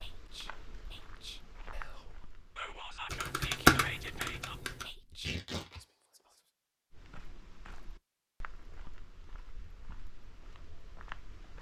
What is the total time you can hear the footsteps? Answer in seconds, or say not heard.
8 s.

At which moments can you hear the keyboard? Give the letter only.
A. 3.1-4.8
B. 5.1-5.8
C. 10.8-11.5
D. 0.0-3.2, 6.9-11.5
A.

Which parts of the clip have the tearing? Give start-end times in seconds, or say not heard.
5.1-5.8.